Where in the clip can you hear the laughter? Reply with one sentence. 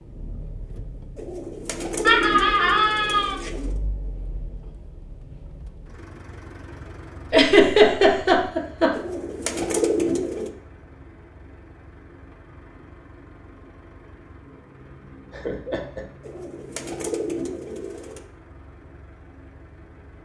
You can hear the laughter from 2.0 to 3.4 s, from 7.3 to 8.9 s and from 15.3 to 16.0 s.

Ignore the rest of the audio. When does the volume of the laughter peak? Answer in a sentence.
The loudest moment of the laughter is at 8 seconds.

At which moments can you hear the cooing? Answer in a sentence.
The cooing can be heard from 1.1 to 3.8 s, from 8.9 to 10.5 s and from 16.2 to 18.2 s.